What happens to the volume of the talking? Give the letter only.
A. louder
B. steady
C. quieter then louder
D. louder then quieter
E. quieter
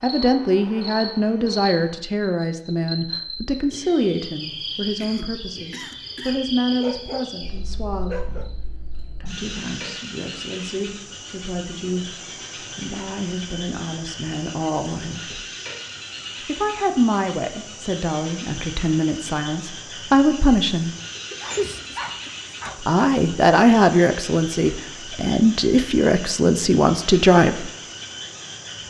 C.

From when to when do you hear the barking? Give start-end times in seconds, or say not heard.
6.8-8.5, 21.3-22.8.